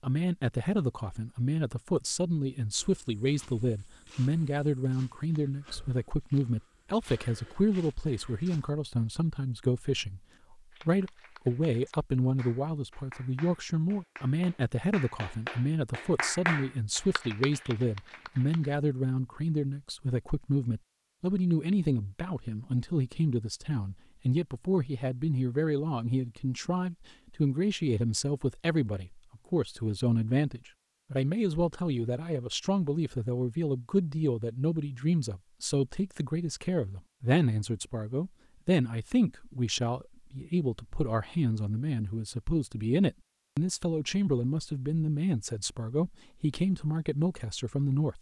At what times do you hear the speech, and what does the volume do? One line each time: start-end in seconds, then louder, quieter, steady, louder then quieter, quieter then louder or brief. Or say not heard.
0.0-48.1 steady.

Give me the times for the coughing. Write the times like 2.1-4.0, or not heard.
not heard.